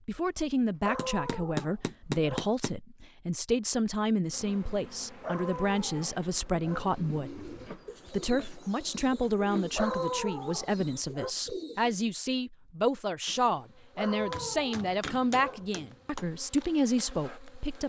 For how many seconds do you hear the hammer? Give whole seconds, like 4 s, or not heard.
4 s.